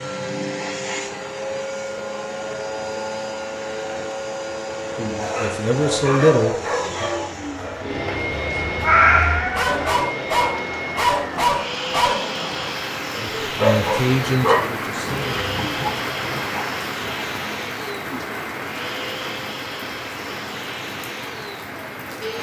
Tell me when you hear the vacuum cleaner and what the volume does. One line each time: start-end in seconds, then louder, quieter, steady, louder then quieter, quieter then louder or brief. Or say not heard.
0.0-22.3 quieter.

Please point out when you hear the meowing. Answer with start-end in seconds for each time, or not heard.
8.8-9.8.